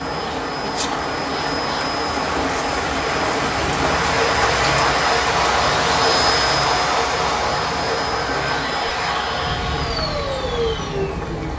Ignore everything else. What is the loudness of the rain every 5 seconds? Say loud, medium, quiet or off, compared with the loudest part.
loud, loud, medium.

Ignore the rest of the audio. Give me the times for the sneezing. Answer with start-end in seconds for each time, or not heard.
0.6-1.0, 8.2-8.8.